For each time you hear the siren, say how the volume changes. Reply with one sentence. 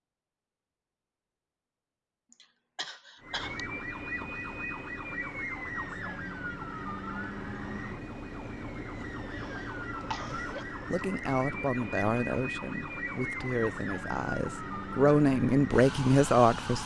The siren can be heard from 3.2 to 16.8 s, at a steady volume.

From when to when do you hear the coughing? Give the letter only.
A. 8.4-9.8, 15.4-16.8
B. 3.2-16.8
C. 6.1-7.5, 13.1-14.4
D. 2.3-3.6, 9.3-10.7
D.